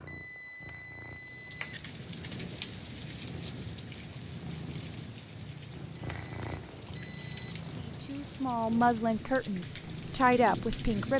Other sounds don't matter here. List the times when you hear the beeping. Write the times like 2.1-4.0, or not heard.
0.1-1.9, 6.0-7.5.